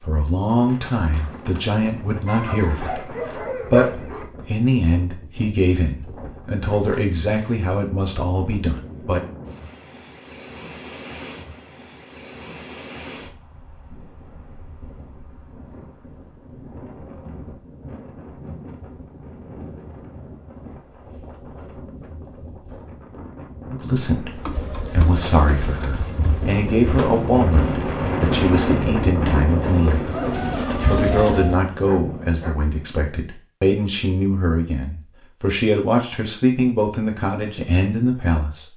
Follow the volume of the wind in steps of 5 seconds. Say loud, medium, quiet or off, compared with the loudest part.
quiet, quiet, quiet, quiet, quiet, loud, medium, off.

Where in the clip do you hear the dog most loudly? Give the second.
4 s.